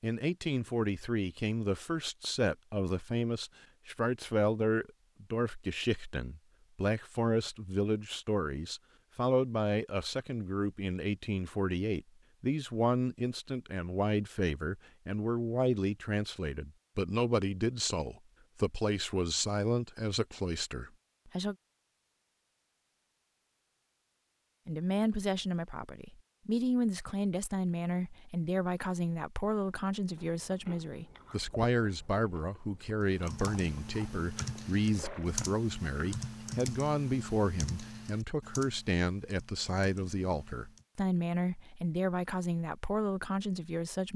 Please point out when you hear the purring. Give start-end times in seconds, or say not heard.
not heard.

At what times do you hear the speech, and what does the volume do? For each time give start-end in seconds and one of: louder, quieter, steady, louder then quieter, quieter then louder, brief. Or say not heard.
0.0-21.6 steady
24.6-44.1 steady.